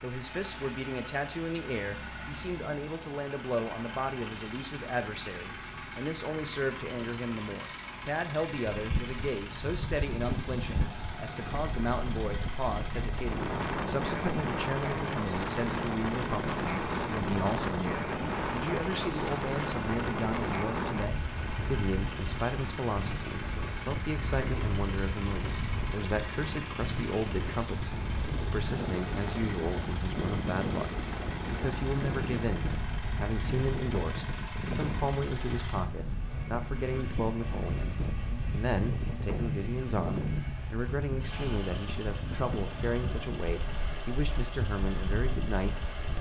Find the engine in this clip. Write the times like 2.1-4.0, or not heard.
0.0-46.1.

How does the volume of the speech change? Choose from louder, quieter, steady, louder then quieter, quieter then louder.
steady.